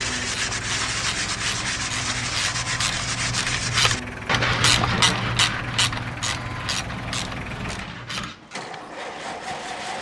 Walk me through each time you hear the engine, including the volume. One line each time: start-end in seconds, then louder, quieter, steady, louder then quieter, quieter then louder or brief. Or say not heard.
0.0-9.9 steady.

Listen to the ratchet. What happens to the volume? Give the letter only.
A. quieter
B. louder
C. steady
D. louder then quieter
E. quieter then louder
D.